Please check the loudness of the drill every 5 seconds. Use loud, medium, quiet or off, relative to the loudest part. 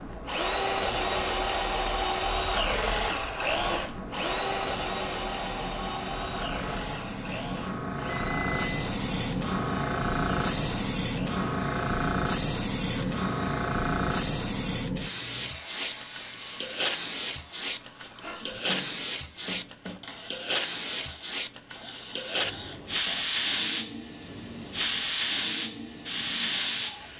loud, medium, quiet, quiet, quiet, quiet.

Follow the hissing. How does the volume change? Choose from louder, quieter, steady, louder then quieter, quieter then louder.
louder.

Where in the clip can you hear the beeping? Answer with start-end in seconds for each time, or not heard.
8.1-8.8.